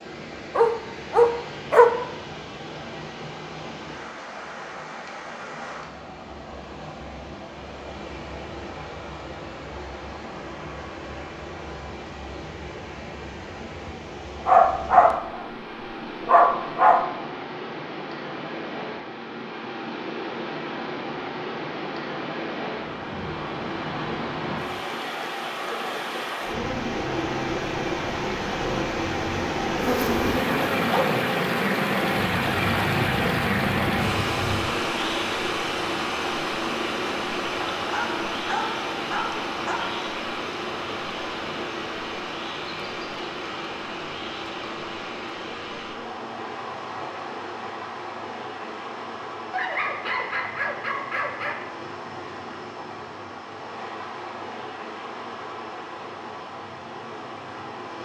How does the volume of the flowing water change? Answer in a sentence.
The loudness of the flowing water goes up, then down.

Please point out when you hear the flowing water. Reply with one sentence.
You can hear the flowing water from 0.0 to 58.0 s.